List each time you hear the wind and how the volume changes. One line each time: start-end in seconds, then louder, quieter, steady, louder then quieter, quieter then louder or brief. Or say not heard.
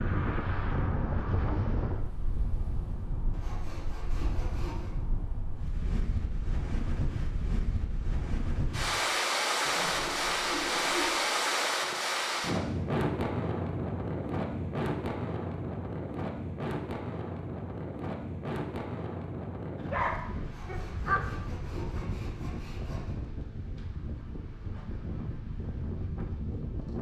0.0-26.9 louder then quieter.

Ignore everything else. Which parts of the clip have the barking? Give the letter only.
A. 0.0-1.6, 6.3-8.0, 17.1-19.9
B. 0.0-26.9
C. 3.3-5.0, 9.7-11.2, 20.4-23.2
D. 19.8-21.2
D.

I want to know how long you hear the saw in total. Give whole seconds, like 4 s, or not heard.
6 s.